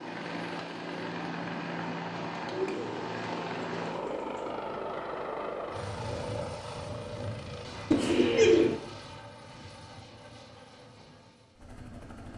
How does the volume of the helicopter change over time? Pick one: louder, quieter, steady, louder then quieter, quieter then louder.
quieter.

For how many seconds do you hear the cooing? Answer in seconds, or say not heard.
3 s.